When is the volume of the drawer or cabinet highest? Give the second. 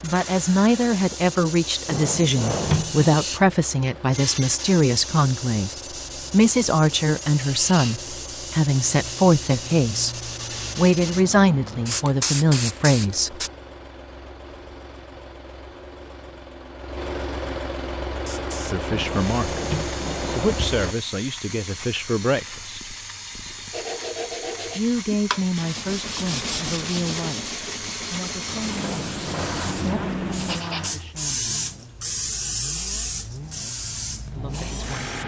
3 s.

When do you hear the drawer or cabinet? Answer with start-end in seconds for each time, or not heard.
1.9-3.1, 18.9-20.8, 28.8-29.6.